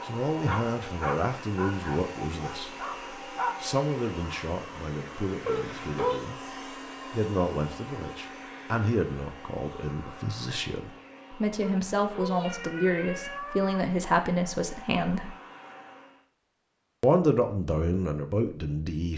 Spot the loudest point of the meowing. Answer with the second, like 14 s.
6 s.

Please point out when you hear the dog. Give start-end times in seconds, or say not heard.
0.0-3.5.